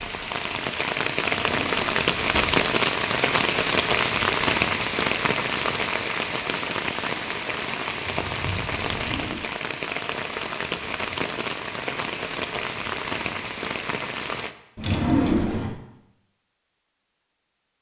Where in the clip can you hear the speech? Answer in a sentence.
The speech can't be heard in this clip.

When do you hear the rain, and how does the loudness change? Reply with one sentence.
The rain can be heard from 0.0 to 14.6 s, getting quieter.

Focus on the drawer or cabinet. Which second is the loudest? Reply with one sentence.
The volume of the drawer or cabinet peaks at 15 seconds.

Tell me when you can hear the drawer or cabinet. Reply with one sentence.
The drawer or cabinet can be heard from 1.4 to 2.5 s, from 8.8 to 9.6 s and from 14.8 to 15.8 s.